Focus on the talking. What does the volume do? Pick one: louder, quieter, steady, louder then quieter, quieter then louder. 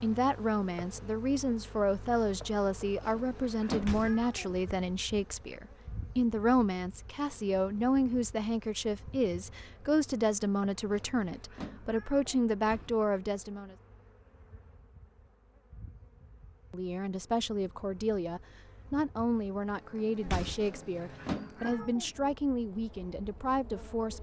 steady.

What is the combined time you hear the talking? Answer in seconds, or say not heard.
21 s.